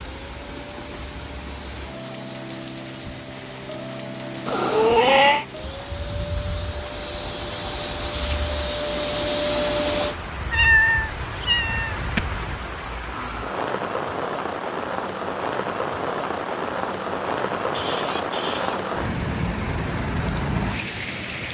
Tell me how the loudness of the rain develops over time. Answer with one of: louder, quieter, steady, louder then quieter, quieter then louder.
louder.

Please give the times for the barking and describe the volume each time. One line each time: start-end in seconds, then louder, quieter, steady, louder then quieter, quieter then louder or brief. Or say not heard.
not heard.